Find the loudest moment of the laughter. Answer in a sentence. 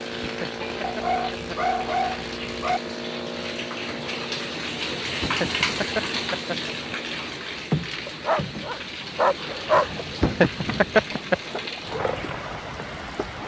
The volume of the laughter peaks at 11 seconds.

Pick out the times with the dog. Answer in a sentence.
You can hear the dog from 0.8 to 2.8 s and from 8.1 to 9.8 s.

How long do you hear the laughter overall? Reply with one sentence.
The laughter can be heard for 4 seconds in total.